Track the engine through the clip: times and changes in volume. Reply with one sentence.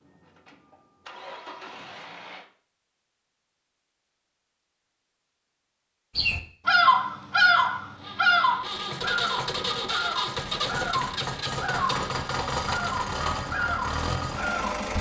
You can hear the engine briefly from 0.0 to 2.5 s; and from 8.0 to 14.9 s, at a steady volume.